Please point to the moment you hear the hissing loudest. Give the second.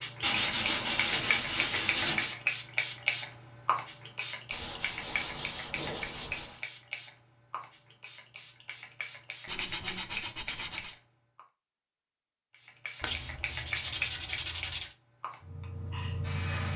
3 s.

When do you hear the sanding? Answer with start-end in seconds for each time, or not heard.
0.2-2.4, 4.5-6.7, 9.4-10.9, 13.0-14.9.